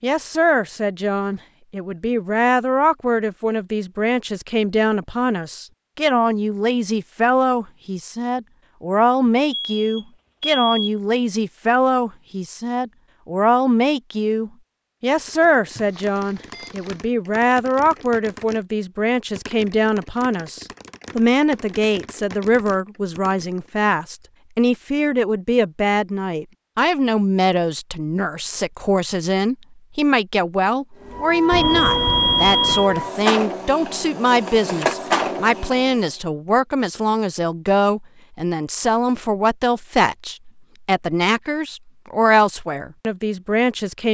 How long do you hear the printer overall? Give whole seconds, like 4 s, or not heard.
5 s.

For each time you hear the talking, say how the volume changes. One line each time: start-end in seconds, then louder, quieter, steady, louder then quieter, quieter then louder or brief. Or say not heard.
0.0-44.1 steady.